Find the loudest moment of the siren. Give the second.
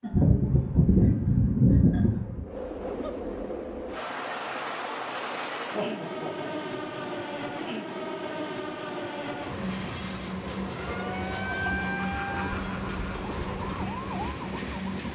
12 s.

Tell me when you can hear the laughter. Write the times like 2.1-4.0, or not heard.
0.0-2.5, 5.7-7.0, 10.8-13.2.